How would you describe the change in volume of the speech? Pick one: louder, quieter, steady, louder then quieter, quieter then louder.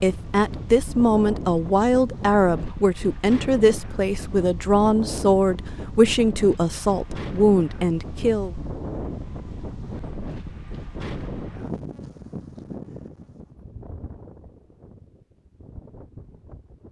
steady.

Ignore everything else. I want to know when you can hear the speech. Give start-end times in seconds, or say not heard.
0.0-8.6.